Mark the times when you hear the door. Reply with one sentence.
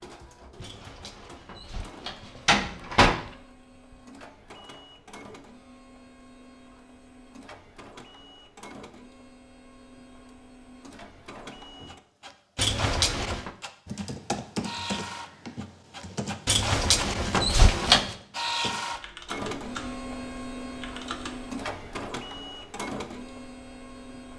The door can be heard from 0.6 to 3.1 s, from 12.6 to 13.5 s and from 16.4 to 18.1 s.